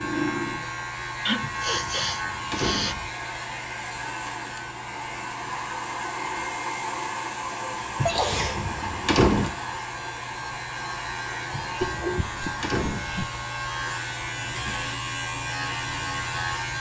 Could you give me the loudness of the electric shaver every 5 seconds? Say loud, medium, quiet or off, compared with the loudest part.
loud, medium, loud, loud.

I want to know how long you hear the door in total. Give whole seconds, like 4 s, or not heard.
5 s.